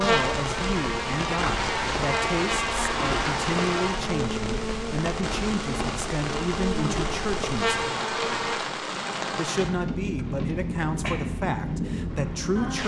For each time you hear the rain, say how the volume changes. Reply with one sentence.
The rain can be heard from 0.0 to 12.8 s, at a steady volume.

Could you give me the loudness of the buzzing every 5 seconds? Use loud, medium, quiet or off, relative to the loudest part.
loud, loud, off.